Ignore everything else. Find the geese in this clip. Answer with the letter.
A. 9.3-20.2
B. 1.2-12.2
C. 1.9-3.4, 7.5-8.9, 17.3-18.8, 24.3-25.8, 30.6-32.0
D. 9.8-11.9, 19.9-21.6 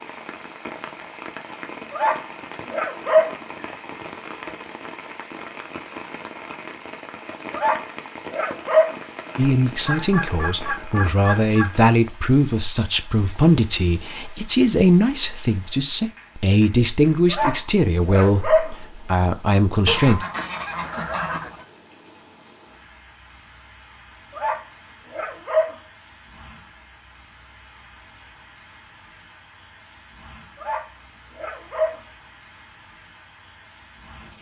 D.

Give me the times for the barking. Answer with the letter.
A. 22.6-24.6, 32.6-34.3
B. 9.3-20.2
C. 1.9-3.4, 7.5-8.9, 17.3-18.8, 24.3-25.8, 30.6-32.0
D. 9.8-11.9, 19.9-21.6
C.